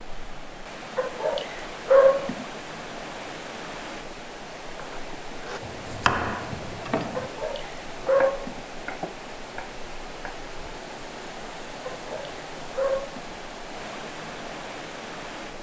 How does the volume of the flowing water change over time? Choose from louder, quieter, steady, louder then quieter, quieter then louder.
steady.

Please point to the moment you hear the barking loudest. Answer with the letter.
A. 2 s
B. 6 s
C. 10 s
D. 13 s
A.